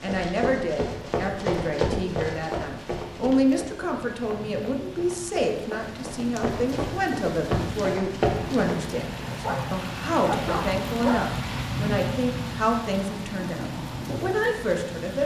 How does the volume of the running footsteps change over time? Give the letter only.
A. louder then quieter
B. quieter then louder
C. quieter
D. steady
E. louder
B.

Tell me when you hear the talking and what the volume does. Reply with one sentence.
The talking can be heard from 0.0 to 15.2 s, at a steady volume.